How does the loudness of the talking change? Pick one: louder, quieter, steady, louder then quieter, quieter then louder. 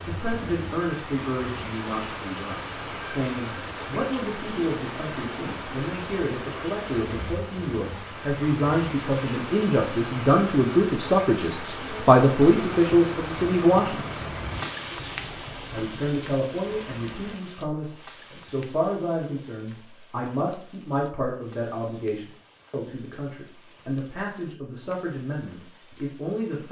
louder then quieter.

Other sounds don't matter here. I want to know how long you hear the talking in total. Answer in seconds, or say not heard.
25 s.